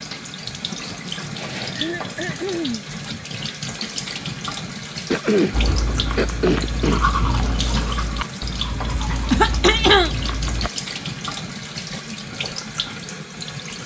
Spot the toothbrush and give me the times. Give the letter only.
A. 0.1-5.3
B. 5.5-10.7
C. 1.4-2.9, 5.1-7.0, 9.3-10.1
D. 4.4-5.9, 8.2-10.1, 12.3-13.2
B.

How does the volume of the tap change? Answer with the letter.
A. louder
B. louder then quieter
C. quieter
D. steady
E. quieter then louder
D.